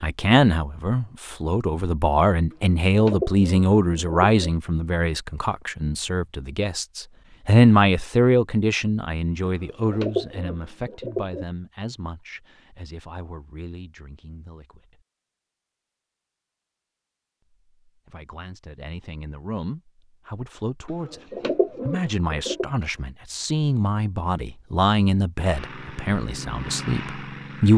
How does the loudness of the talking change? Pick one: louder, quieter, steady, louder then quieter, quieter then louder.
quieter then louder.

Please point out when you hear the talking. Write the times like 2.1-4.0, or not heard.
0.0-15.0, 17.9-27.7.